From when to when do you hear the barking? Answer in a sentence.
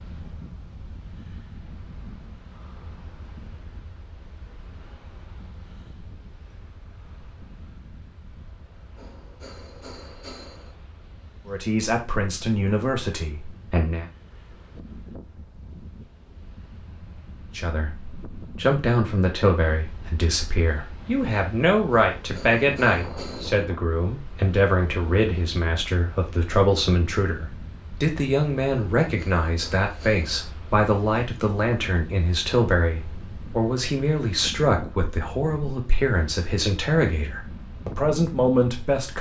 You can't hear the barking here.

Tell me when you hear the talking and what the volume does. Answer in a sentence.
You can hear the talking briefly from 11.4 to 14.1 s; and from 17.6 to 39.1 s, at a steady volume.